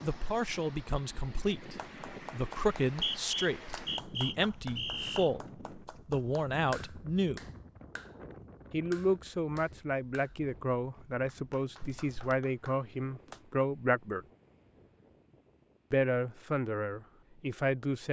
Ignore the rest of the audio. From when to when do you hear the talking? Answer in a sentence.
You can hear the talking from 0.0 to 7.5 s, from 8.7 to 14.2 s and from 15.9 to 18.0 s.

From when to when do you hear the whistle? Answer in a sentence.
The whistle can be heard from 2.9 to 5.3 s.